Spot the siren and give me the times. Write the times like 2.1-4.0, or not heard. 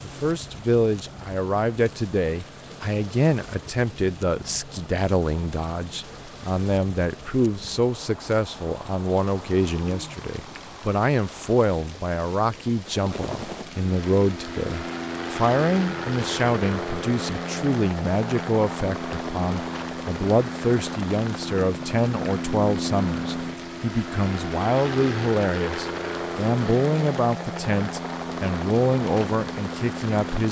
not heard.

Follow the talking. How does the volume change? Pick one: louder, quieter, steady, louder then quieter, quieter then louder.
steady.